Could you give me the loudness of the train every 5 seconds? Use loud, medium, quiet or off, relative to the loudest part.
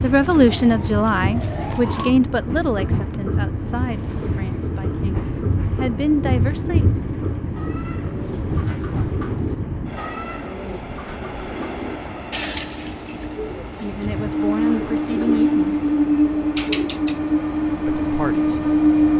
medium, medium, medium, loud.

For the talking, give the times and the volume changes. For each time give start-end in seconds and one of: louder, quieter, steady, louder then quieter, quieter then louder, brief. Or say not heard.
0.0-6.8 quieter then louder
13.8-15.8 brief
17.9-19.1 brief.